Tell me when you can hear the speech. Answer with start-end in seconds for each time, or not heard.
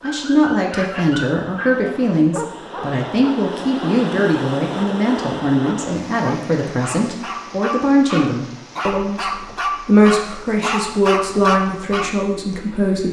0.0-13.0.